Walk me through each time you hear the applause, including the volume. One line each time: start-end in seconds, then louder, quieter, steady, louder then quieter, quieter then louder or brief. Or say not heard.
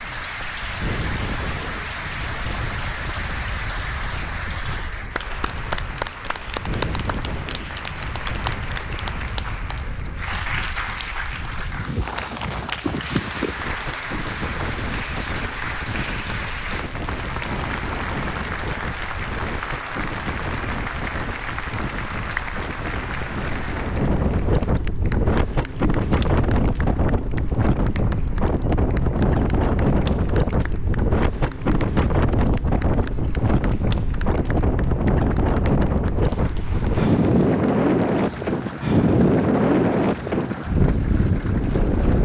0.0-42.2 quieter.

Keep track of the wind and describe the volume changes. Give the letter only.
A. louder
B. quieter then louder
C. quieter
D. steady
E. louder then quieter
A.